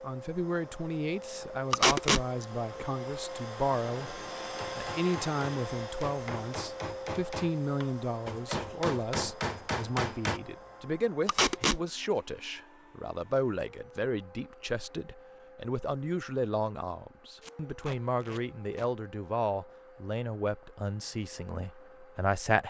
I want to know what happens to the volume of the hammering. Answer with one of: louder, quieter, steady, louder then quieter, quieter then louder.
louder.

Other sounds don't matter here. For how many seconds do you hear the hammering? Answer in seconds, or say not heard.
6 s.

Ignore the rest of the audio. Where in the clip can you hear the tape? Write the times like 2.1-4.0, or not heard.
1.7-2.2, 11.2-11.8, 17.4-18.9.